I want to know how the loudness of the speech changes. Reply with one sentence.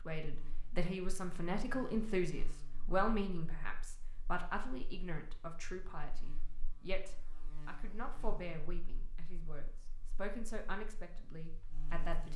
The volume of the speech goes down.